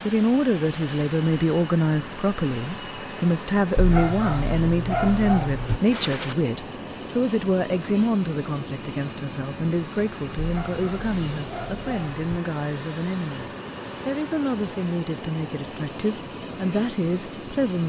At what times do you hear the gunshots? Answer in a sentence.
The gunshots can be heard from 5.9 to 6.3 s.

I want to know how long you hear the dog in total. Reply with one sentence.
The dog can be heard for 4 seconds in total.